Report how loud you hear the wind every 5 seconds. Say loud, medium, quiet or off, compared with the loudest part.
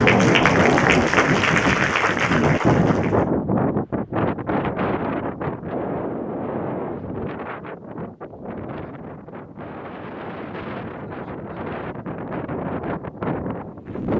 loud, medium, medium.